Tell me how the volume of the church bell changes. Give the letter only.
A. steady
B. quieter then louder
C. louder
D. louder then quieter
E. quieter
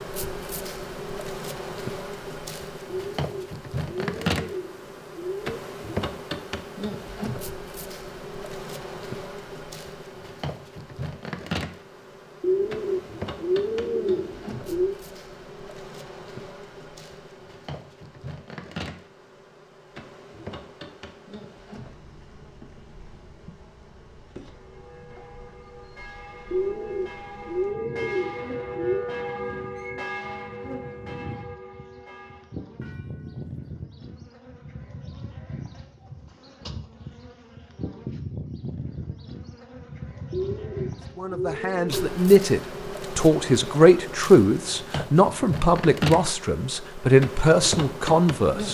D.